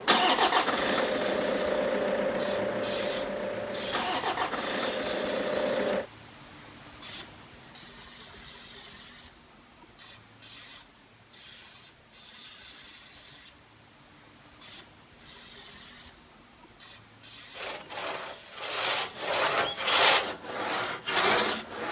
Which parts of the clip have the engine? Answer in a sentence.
You can hear the engine from 0.0 to 6.0 s.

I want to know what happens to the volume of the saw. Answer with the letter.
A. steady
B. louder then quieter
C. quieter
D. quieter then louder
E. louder
E.